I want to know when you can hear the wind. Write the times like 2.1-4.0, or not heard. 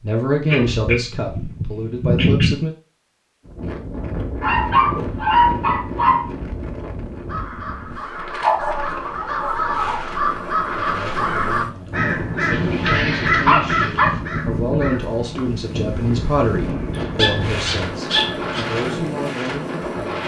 3.5-20.2.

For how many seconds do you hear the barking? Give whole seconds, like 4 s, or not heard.
9 s.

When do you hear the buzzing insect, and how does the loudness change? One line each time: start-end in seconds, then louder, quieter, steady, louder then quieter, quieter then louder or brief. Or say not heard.
not heard.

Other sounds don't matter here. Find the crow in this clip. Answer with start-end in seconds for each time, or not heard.
7.2-18.8.